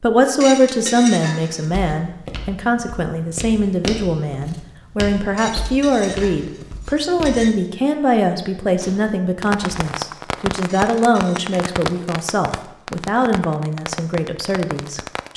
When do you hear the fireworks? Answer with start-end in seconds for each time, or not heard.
8.8-15.3.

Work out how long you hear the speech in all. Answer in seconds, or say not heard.
15 s.